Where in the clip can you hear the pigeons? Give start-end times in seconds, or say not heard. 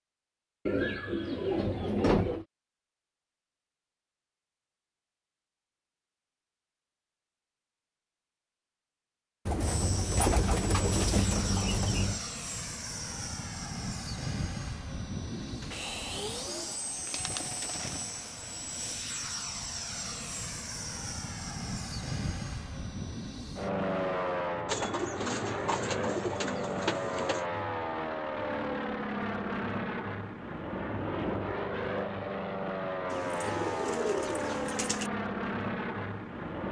0.7-2.5, 9.4-12.2, 15.3-18.1, 24.6-27.4, 33.1-35.1.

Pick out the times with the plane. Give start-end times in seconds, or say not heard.
9.6-36.6.